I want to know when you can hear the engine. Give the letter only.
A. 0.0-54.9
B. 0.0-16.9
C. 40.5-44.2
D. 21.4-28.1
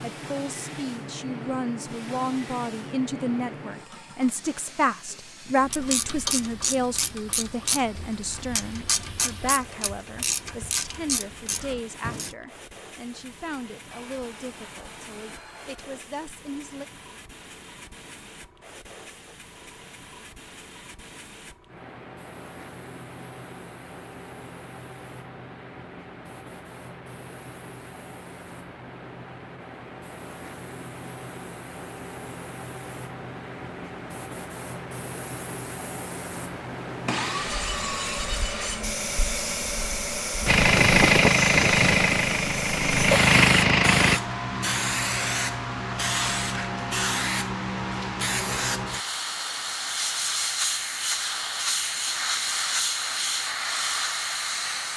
C.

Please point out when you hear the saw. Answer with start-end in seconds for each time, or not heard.
13.9-15.9, 37.0-38.9.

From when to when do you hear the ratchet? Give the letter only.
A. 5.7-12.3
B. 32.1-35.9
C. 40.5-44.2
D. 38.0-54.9
A.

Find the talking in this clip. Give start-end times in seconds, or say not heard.
0.0-16.9.